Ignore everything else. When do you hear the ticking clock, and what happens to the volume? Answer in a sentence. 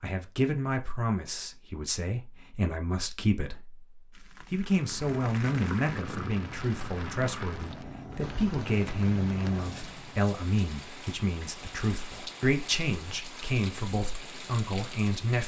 You can't hear the ticking clock here.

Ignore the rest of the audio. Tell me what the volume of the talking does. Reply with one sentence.
The loudness of the talking stays about the same.